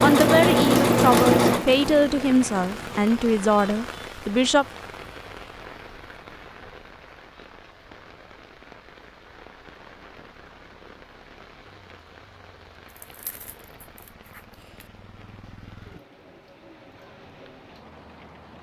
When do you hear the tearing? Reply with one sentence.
You can hear the tearing from 12.8 to 14.9 s.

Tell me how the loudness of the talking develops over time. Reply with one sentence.
The volume of the talking stays about the same.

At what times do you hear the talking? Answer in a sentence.
You can hear the talking from 0.0 to 4.7 s.